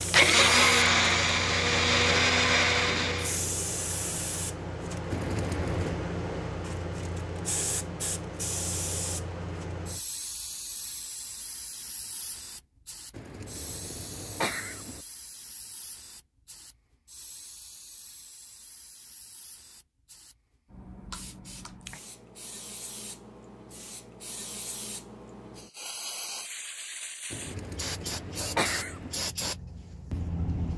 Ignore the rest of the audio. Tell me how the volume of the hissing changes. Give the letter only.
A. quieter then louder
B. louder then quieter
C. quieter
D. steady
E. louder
A.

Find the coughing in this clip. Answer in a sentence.
You can hear the coughing from 5.1 to 6.0 s, from 13.1 to 15.0 s and from 27.3 to 29.2 s.